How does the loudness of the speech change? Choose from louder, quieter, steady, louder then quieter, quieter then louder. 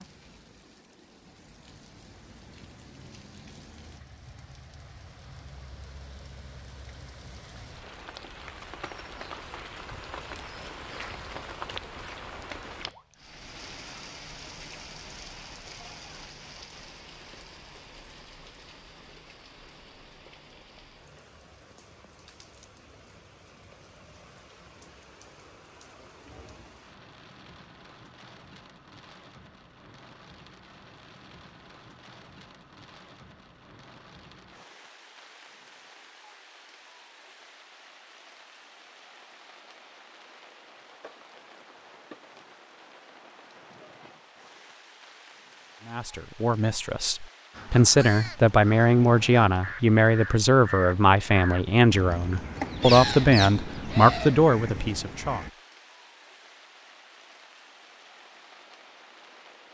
steady.